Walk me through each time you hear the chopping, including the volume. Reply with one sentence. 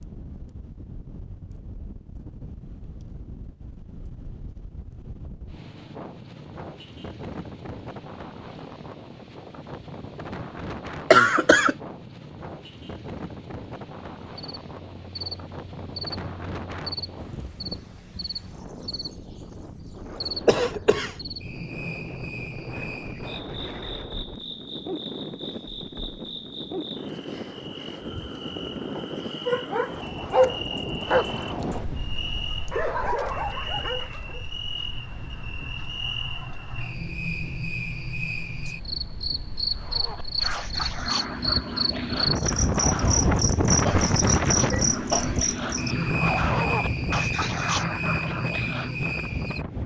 The chopping can't be heard in this clip.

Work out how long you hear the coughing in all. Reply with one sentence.
The coughing can be heard for 3 seconds in total.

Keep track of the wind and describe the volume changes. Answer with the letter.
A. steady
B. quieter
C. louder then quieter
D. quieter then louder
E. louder
E.